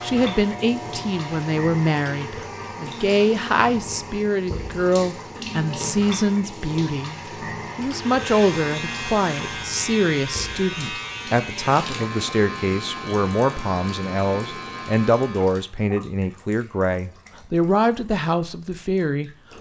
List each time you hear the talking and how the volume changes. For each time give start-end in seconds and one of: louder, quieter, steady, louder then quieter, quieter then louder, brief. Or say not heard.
0.0-7.2 steady
7.8-19.3 steady.